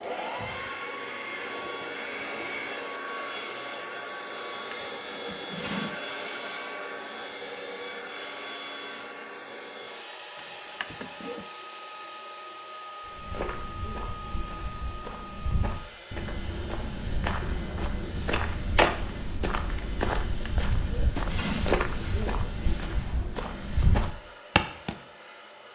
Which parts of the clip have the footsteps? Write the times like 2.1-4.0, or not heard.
13.1-24.9.